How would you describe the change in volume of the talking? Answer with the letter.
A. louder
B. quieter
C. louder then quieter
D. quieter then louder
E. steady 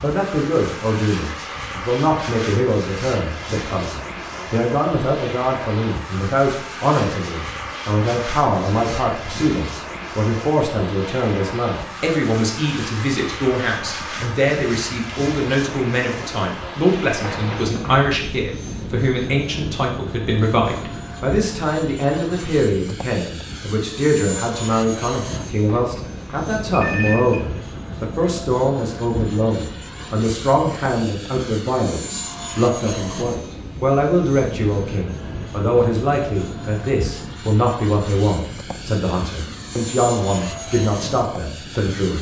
E.